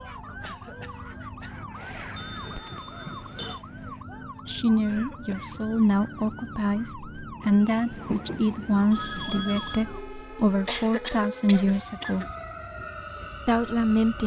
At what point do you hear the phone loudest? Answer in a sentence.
The loudest moment of the phone is at 9 seconds.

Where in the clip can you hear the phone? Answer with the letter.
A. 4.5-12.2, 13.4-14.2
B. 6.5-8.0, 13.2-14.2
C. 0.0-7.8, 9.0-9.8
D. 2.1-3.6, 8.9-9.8
D.